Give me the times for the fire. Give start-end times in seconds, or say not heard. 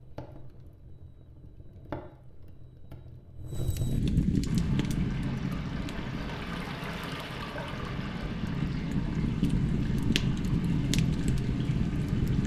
0.0-12.4.